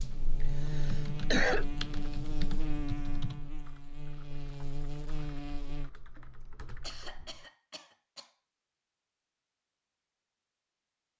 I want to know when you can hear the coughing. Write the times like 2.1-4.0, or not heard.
0.7-1.6, 6.4-8.3.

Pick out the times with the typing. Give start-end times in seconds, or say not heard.
0.0-7.5.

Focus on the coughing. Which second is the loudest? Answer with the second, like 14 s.
1 s.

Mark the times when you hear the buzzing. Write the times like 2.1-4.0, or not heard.
0.0-5.9.